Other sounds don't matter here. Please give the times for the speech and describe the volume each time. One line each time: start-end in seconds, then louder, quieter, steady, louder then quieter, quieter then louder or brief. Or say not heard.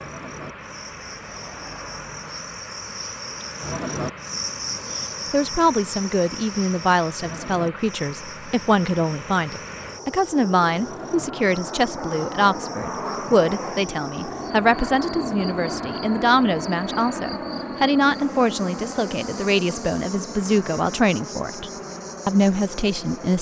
5.3-23.3 steady.